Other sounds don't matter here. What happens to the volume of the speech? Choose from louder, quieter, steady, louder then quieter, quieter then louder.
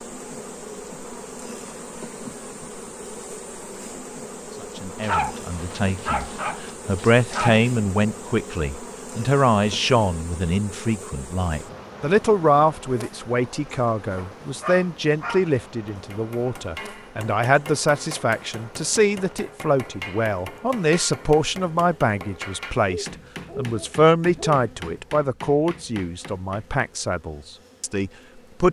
steady.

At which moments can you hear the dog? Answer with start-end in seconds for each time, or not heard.
5.0-7.7, 14.2-15.5, 22.9-24.6.